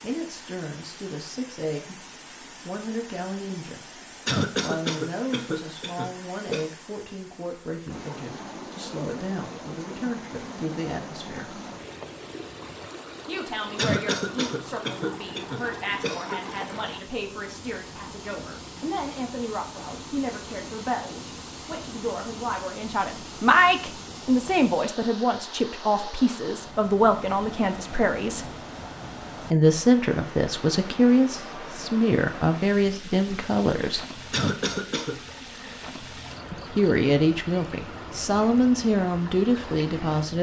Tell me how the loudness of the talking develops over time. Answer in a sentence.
The volume of the talking goes up.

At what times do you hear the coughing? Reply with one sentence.
You can hear the coughing from 4.2 to 6.7 s, from 13.8 to 16.4 s and from 34.3 to 35.2 s.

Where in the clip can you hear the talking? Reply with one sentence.
You can hear the talking from 0.0 to 11.6 s, from 13.2 to 28.4 s, from 29.5 to 34.0 s and from 36.5 to 40.3 s.